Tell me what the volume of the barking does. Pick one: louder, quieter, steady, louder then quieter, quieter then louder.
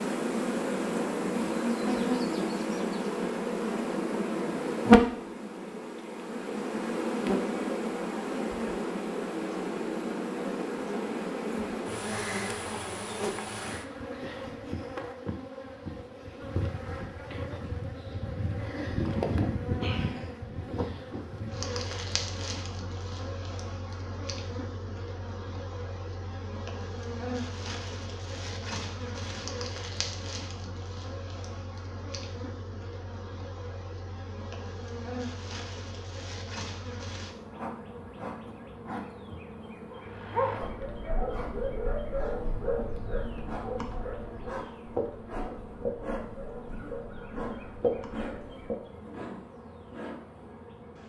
quieter.